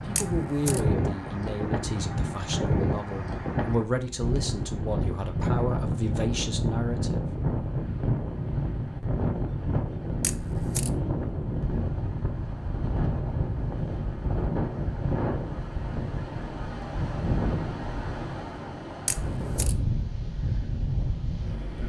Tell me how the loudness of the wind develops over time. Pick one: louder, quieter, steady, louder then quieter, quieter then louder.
steady.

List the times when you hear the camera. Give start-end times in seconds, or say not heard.
0.1-0.8, 10.2-10.9, 19.1-19.8.